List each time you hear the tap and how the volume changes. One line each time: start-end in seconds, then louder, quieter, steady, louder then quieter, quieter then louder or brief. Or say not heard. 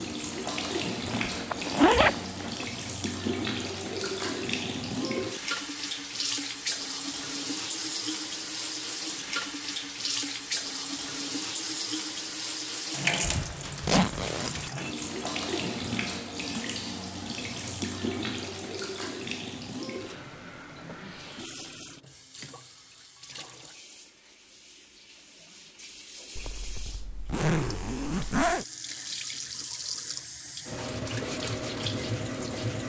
0.0-32.8 quieter then louder.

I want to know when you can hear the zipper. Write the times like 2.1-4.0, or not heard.
1.1-2.6, 13.2-14.7, 26.4-28.6.